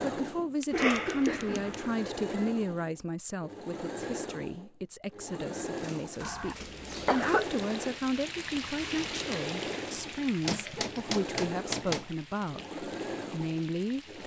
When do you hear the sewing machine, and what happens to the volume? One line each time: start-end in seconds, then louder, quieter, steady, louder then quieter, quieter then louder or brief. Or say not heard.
0.0-14.2 steady.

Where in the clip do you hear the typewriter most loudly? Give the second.
12 s.